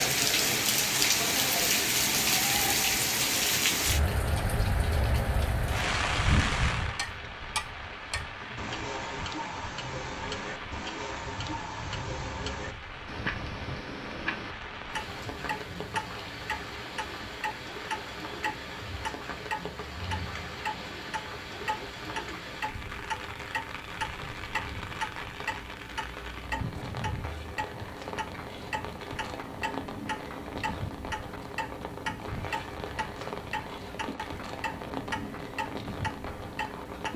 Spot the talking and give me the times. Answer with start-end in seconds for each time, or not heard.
not heard.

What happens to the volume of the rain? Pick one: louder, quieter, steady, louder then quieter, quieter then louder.
quieter.